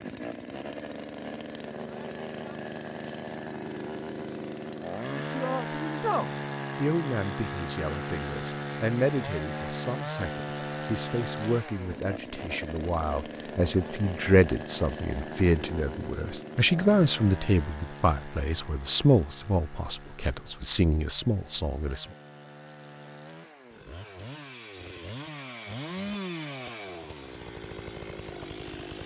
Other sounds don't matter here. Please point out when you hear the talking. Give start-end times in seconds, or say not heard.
5.1-22.1.